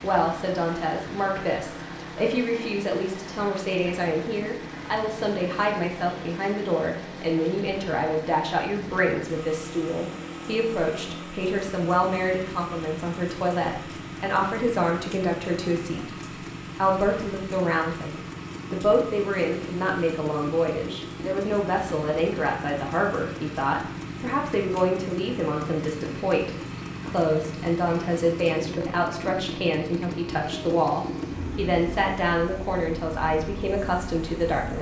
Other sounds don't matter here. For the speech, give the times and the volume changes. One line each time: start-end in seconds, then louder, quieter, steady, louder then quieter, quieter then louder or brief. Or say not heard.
0.0-34.7 steady.